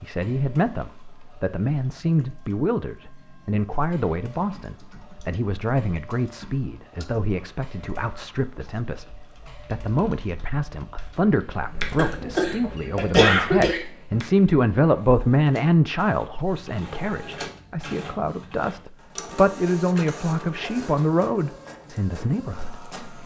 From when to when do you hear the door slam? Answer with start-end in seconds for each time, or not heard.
not heard.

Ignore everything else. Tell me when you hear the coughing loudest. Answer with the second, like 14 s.
13 s.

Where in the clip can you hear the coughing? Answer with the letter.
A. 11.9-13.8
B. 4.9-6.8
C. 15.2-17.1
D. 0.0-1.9
A.